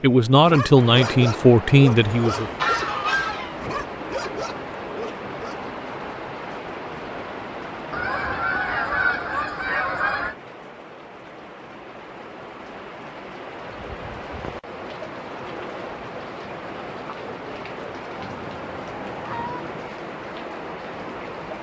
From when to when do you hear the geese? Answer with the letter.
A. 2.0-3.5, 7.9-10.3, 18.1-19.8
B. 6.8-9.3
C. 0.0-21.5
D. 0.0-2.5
A.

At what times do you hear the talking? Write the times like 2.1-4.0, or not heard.
0.0-2.5.